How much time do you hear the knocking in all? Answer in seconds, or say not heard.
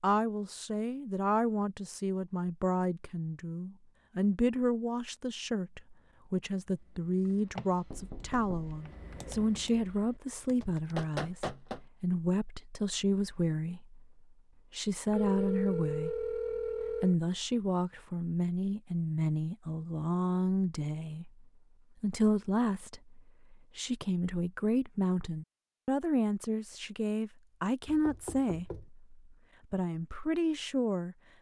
3 s.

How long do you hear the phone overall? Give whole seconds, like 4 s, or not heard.
2 s.